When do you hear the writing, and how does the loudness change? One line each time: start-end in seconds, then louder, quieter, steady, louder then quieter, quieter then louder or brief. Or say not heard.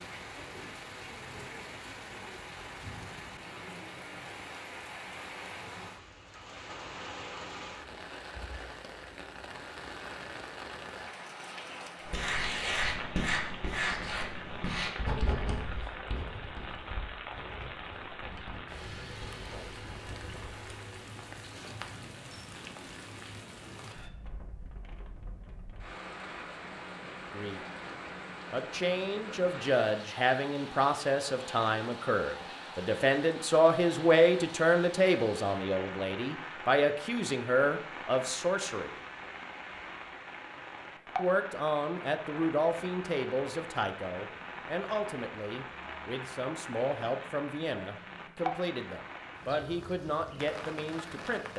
12.1-20.6 quieter.